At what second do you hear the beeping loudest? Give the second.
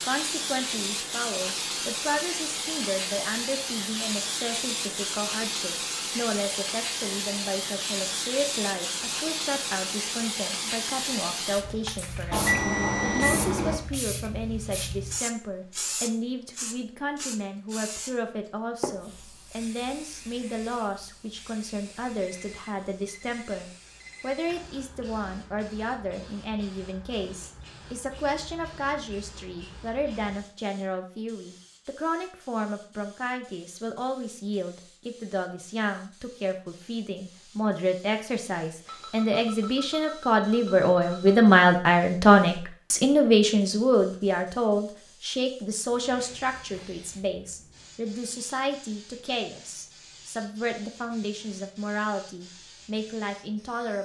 13 s.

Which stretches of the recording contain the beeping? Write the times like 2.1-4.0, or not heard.
12.3-13.8, 22.2-24.4, 38.9-41.4.